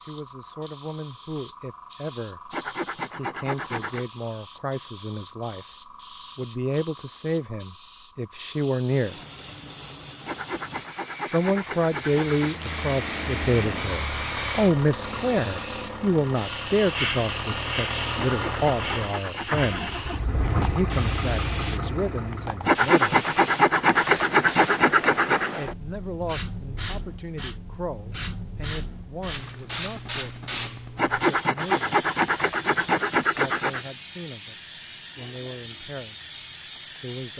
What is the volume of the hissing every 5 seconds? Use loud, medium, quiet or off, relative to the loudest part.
medium, medium, loud, loud, medium, medium, medium, medium.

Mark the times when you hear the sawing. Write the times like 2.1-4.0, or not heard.
2.5-4.0, 10.2-12.6, 18.1-19.9, 22.6-25.6, 30.9-33.9.